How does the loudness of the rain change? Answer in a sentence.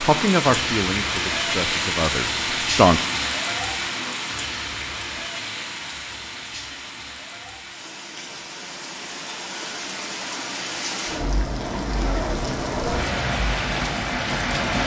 The loudness of the rain goes down, then up.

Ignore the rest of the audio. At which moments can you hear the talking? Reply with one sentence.
You can hear the talking from 0.0 to 3.0 s.